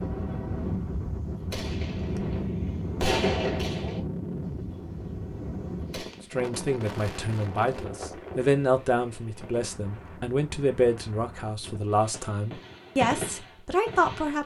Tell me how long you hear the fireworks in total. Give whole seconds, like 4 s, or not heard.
9 s.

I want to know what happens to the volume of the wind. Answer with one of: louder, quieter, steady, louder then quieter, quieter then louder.
quieter.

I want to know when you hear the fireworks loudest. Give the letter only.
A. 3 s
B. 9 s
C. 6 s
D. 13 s
A.